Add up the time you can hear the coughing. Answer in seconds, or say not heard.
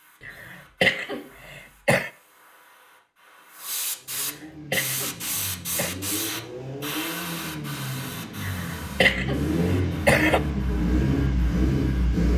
6 s.